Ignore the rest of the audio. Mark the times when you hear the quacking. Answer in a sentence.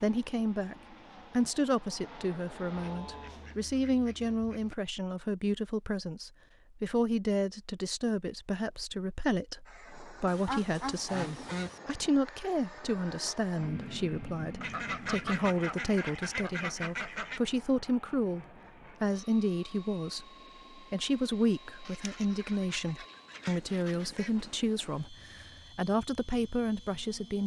You can hear the quacking from 2.7 to 4.8 s, from 10.2 to 11.8 s, from 14.6 to 17.4 s and from 21.9 to 24.5 s.